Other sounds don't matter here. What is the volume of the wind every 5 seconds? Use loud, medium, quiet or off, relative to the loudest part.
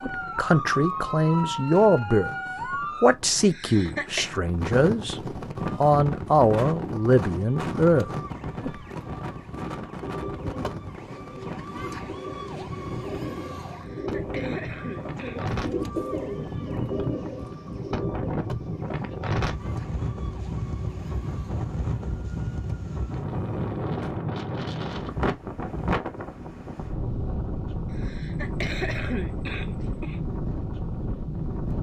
medium, loud, medium, loud, loud, loud, loud.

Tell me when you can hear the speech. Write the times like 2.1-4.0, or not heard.
0.0-2.3, 3.0-5.2, 5.8-8.8.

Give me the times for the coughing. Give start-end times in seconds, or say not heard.
3.5-4.3, 13.7-15.4, 27.9-30.2.